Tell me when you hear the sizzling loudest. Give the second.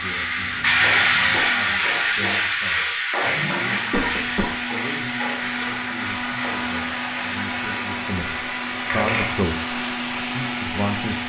1 s.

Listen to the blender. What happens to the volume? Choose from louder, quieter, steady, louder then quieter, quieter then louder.
louder.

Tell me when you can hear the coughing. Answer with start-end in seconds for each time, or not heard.
3.9-4.5.